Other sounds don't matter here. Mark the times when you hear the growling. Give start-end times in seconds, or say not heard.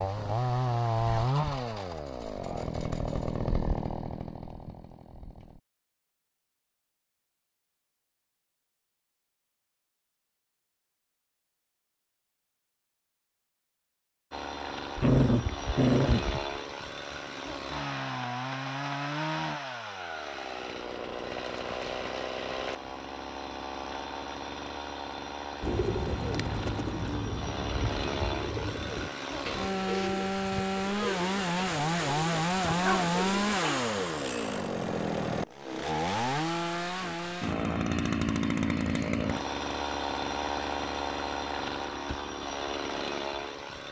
14.9-16.4, 32.6-33.9.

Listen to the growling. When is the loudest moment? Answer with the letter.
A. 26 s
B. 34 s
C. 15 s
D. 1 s
C.